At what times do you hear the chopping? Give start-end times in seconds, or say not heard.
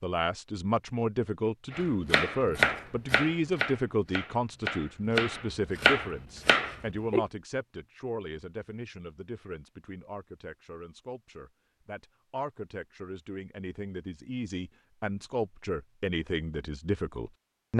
1.7-7.2.